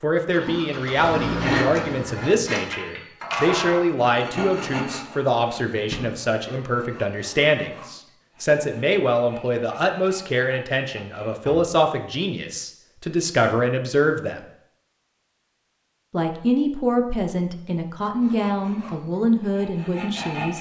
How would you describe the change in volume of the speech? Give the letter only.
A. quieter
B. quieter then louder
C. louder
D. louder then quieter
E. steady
E.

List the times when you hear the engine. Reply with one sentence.
The engine can be heard from 0.0 to 2.5 s.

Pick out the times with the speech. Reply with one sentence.
You can hear the speech from 0.0 to 14.4 s and from 16.1 to 20.5 s.